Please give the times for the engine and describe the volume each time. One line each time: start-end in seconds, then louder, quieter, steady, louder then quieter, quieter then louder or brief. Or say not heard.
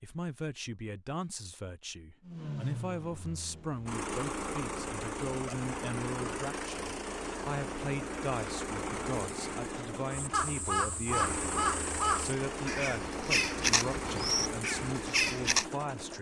2.2-16.1 steady.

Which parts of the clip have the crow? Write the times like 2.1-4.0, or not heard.
10.1-15.7.